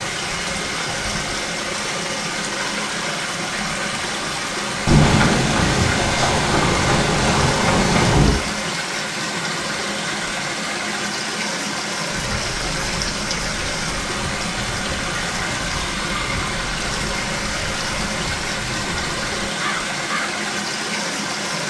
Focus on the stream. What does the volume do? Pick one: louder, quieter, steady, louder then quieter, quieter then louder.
steady.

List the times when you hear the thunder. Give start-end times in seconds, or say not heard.
4.8-8.3.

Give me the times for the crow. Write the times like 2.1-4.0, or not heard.
12.1-20.4.